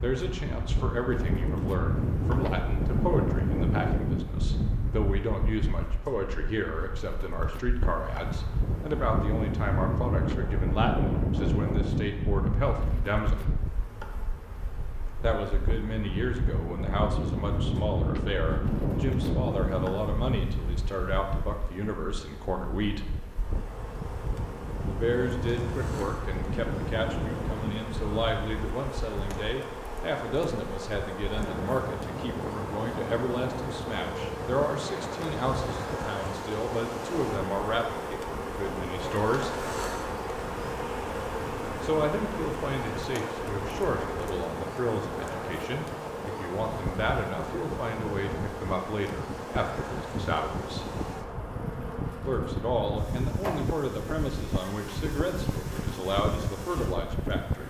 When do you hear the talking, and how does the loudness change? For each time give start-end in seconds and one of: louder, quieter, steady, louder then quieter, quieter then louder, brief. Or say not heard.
0.0-13.5 steady
15.2-23.1 steady
24.9-39.5 steady
41.8-50.9 steady
52.2-57.6 steady.